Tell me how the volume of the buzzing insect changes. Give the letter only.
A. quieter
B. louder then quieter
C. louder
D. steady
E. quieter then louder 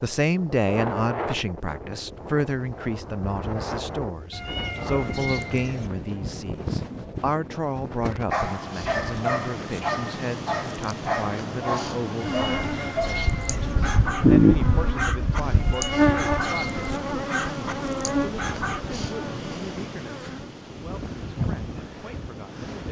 B.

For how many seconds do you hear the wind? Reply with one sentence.
The wind can be heard for 23 seconds in total.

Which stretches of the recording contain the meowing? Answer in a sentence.
The meowing can be heard from 4.3 to 5.9 s, from 12.2 to 13.8 s and from 15.6 to 17.0 s.